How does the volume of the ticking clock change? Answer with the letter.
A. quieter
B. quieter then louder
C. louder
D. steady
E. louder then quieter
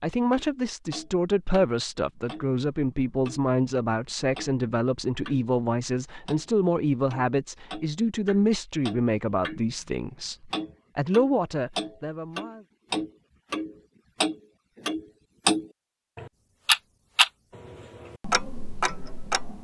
E.